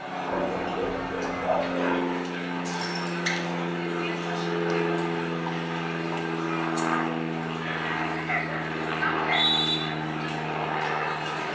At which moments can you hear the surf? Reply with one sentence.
You can't hear the surf here.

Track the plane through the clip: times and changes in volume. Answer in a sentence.
You can hear the plane from 0.0 to 11.5 s, at a steady volume.